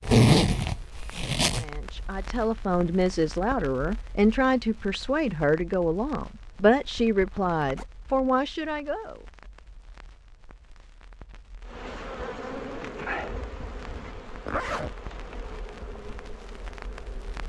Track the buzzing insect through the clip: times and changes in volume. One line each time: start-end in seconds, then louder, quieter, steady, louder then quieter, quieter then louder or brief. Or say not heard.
11.7-17.4 quieter.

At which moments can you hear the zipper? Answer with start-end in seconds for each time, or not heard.
0.1-1.6, 7.0-7.8, 14.4-14.9.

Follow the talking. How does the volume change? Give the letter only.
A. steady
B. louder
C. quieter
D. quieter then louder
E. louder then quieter
A.